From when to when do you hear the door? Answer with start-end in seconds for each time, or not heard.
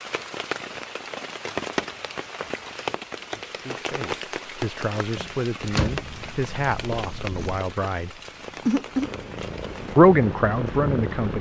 5.2-6.1.